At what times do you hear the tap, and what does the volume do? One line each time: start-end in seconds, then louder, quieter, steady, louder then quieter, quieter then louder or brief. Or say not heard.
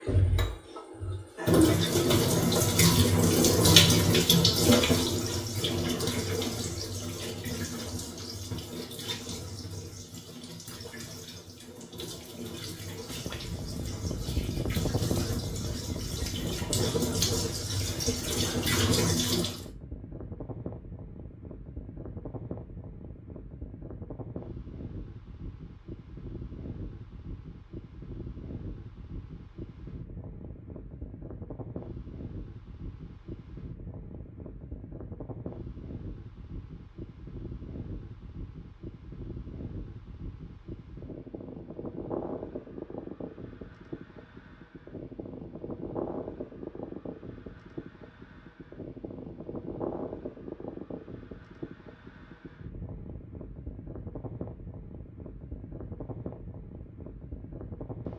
0.0-19.6 quieter then louder.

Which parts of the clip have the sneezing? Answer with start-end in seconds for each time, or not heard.
not heard.